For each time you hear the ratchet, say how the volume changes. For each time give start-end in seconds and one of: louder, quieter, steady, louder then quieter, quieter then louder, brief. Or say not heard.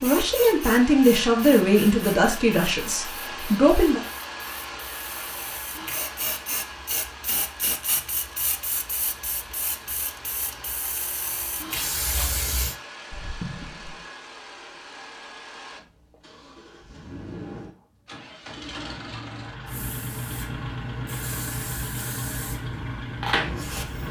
not heard.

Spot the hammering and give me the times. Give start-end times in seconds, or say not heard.
not heard.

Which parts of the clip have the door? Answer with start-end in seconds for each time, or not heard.
13.1-14.1.